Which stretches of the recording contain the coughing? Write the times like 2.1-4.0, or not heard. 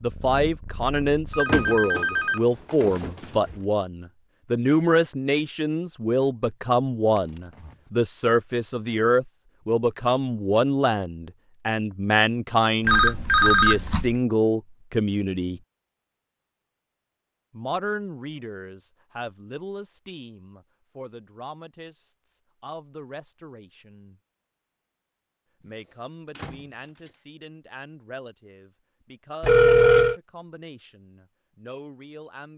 not heard.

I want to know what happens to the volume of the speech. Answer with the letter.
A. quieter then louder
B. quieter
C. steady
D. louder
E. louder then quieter
B.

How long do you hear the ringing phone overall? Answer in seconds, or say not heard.
4 s.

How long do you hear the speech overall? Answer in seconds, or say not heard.
29 s.